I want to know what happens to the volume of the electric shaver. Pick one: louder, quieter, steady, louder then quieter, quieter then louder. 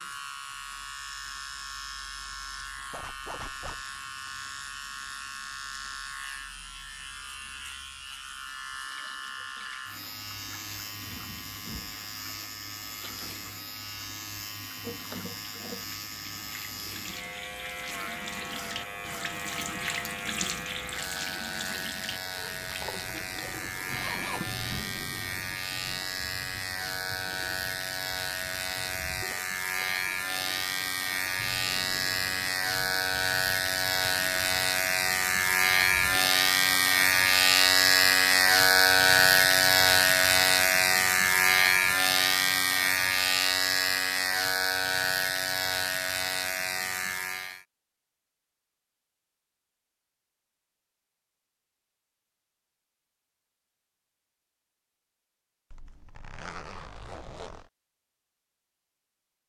louder.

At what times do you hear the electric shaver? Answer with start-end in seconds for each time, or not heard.
0.0-47.6.